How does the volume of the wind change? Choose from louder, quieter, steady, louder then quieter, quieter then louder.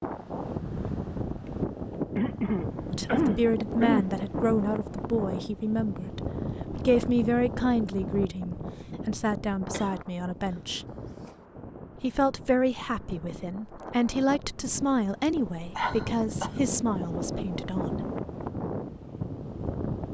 quieter then louder.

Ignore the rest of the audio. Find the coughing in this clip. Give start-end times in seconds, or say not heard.
2.1-4.1, 9.7-10.6, 15.8-16.5.